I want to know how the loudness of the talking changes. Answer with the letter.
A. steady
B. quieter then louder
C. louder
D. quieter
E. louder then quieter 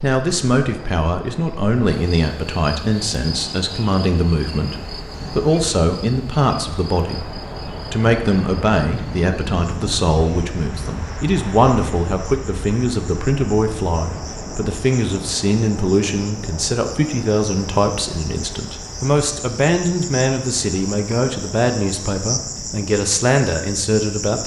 A.